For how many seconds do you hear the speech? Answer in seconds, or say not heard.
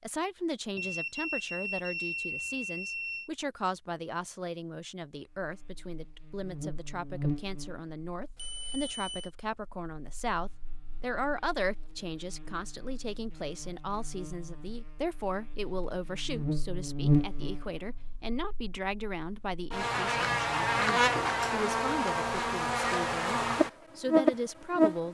25 s.